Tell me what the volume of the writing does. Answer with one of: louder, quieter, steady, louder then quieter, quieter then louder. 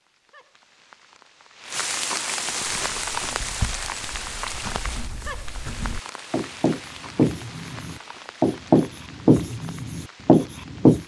louder.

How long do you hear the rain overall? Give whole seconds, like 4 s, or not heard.
11 s.